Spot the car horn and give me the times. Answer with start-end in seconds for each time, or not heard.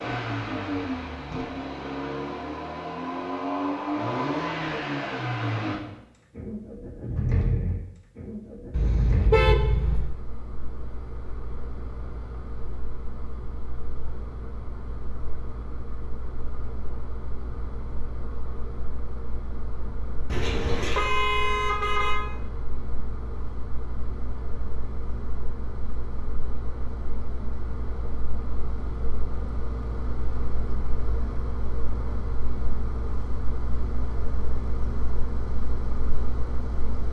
8.7-10.2, 20.2-22.2.